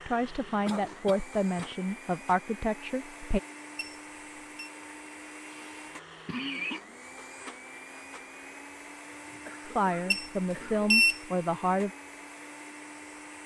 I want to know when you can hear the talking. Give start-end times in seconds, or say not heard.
0.1-3.4, 9.7-11.9.